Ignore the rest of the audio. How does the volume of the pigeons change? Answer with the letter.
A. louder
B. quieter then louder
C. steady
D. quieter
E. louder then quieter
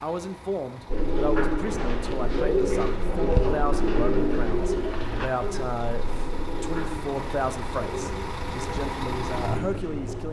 D.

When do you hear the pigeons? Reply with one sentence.
You can hear the pigeons from 0.8 to 10.2 s.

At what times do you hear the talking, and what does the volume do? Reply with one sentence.
The talking can be heard from 0.0 to 10.2 s, at a steady volume.